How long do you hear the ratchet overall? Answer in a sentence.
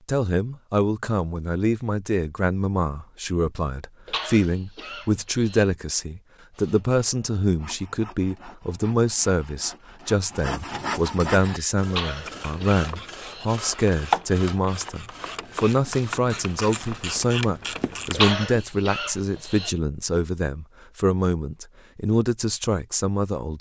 You can hear the ratchet for 7 seconds altogether.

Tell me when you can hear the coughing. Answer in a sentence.
The coughing can be heard from 4.0 to 5.7 s, from 11.9 to 13.4 s and from 18.1 to 19.7 s.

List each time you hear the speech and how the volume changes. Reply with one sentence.
The speech can be heard from 0.1 to 23.5 s, at a steady volume.